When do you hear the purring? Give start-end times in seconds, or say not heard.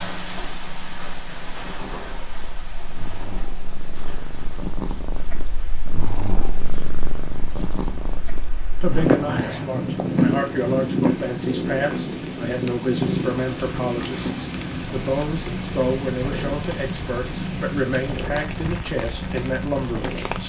0.0-20.4.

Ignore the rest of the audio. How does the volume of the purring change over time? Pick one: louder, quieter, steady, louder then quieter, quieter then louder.
louder then quieter.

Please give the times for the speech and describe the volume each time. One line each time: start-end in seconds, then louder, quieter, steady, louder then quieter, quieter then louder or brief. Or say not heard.
8.8-20.4 steady.